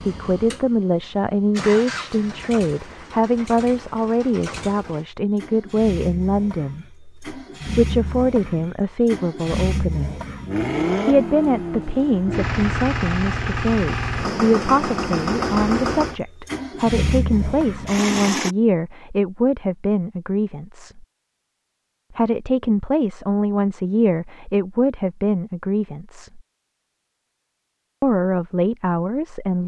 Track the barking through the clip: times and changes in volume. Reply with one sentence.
The barking can't be heard in this clip.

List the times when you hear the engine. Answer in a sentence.
You can hear the engine from 0.0 to 18.6 s.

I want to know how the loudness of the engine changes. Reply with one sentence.
The volume of the engine goes up.